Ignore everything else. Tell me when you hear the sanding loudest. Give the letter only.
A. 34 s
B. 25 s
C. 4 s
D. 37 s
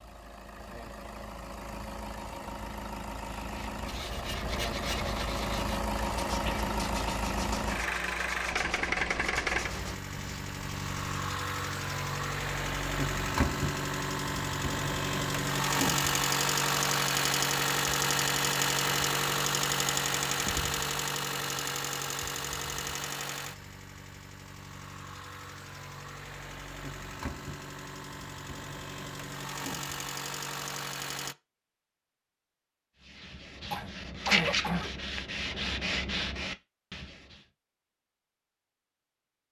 A.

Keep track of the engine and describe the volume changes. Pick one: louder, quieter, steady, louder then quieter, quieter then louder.
louder then quieter.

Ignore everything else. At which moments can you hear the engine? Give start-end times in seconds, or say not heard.
0.0-31.4.